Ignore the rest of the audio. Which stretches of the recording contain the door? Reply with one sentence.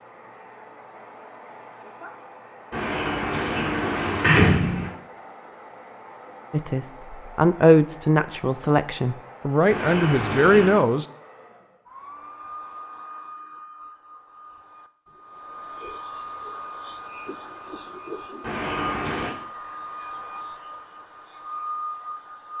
You can hear the door from 2.7 to 4.9 s, from 9.7 to 10.8 s and from 18.4 to 19.3 s.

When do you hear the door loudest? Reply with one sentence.
The volume of the door peaks at 4 seconds.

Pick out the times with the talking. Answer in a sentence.
You can hear the talking from 6.5 to 11.1 s.